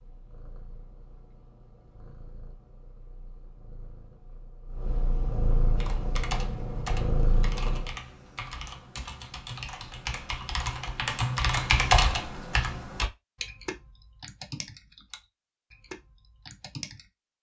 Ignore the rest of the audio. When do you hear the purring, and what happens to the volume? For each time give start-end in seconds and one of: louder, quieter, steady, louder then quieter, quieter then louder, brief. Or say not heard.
0.0-8.0 louder.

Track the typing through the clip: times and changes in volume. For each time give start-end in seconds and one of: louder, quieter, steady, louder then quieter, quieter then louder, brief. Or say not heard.
5.8-17.1 louder then quieter.